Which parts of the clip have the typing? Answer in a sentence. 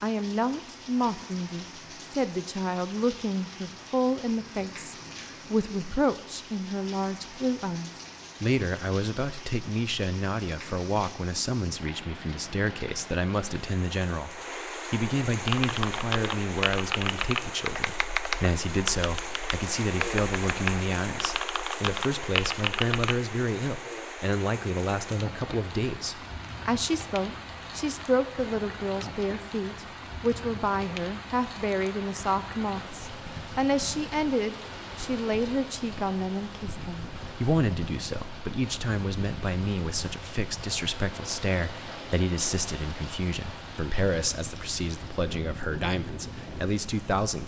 The typing can be heard from 15.3 to 23.2 s.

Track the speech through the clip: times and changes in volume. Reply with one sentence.
You can hear the speech from 0.0 to 47.4 s, at a steady volume.